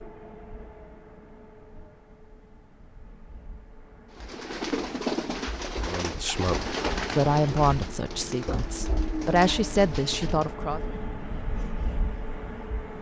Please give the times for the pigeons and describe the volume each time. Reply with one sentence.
The pigeons can be heard from 4.2 to 10.5 s, getting quieter.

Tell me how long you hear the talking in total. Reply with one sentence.
You can hear the talking for 5 seconds altogether.